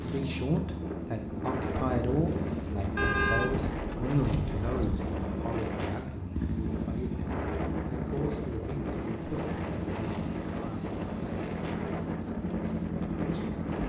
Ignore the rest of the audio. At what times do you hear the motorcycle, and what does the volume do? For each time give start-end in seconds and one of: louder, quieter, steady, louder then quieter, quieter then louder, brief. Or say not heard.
0.0-13.8 steady.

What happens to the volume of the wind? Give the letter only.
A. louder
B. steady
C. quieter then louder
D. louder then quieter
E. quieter
B.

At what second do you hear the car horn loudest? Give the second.
3 s.